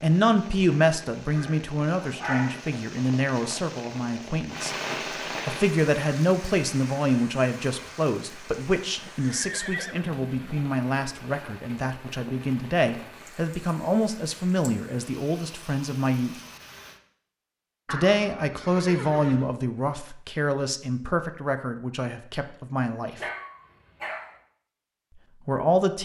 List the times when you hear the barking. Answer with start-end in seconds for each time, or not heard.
1.3-2.6, 23.1-24.4.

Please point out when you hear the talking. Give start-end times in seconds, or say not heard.
0.0-4.8, 5.5-16.4, 17.9-23.2, 25.4-26.0.